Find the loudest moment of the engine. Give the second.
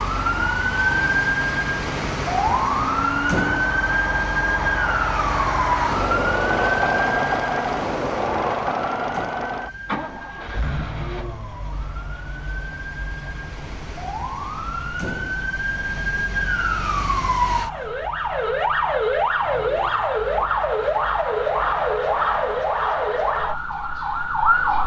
7 s.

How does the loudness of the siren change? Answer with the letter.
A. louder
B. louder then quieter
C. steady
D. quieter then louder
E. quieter
D.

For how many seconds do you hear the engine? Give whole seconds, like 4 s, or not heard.
25 s.